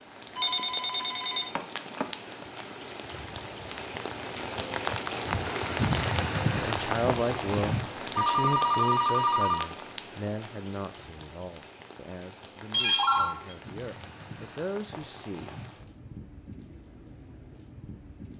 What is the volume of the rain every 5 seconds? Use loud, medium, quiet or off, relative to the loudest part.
medium, loud, quiet, quiet.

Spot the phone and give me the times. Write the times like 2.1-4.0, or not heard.
0.3-2.0, 8.2-9.7, 12.7-13.4.